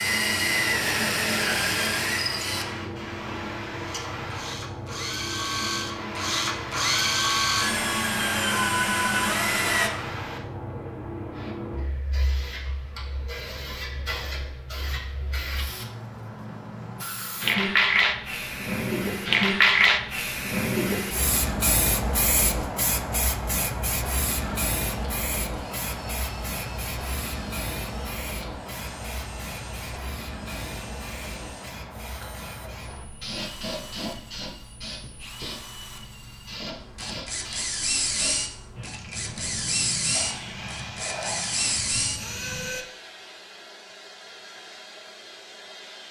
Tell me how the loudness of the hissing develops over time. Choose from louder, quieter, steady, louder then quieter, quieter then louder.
louder then quieter.